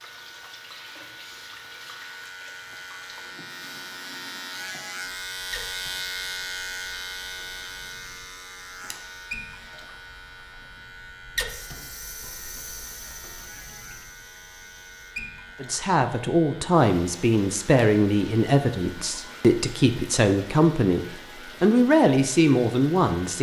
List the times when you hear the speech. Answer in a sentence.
You can hear the speech from 15.6 to 23.3 s.